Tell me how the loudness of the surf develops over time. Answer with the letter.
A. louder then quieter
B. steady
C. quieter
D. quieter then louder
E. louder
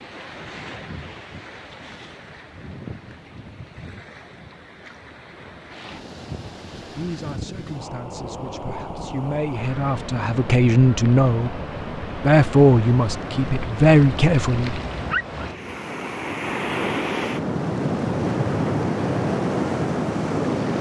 E.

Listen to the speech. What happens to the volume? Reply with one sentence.
The volume of the speech goes up.